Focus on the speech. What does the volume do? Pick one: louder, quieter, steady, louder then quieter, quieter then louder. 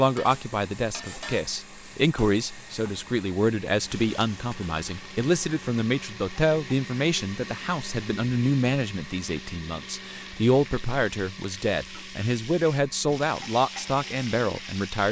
steady.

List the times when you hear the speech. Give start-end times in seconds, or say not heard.
0.0-15.0.